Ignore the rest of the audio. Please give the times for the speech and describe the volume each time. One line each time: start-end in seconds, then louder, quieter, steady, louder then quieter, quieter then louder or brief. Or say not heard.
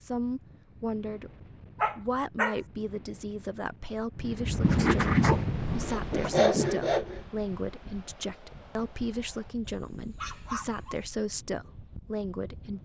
0.0-1.3 brief
1.9-12.8 steady.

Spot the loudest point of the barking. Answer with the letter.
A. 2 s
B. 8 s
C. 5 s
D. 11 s
C.